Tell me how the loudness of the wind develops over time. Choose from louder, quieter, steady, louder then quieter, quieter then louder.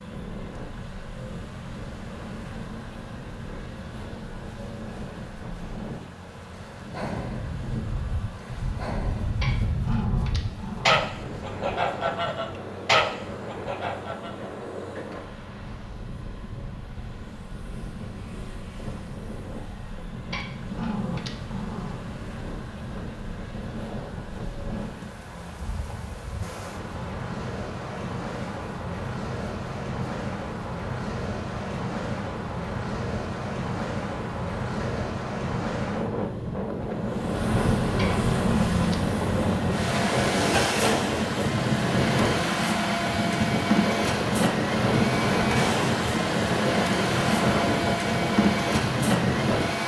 louder.